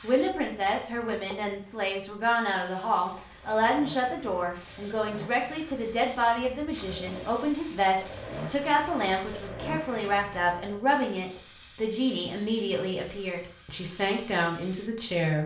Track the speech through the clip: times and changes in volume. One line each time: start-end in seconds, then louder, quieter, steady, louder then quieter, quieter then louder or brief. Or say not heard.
0.0-15.4 steady.